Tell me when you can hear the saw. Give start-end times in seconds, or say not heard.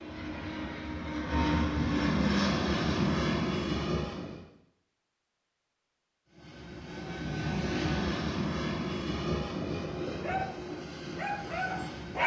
not heard.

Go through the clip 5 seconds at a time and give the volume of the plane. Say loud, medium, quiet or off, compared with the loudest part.
loud, loud, medium.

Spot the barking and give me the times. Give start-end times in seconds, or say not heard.
10.1-12.2.